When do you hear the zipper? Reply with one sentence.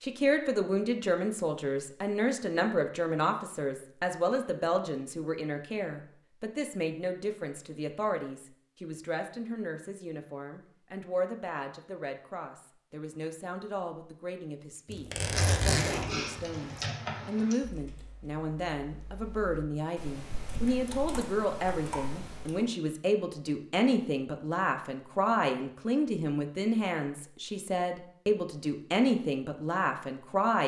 The zipper can be heard from 14.9 to 16.9 s.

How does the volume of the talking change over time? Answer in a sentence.
The volume of the talking goes down, then up.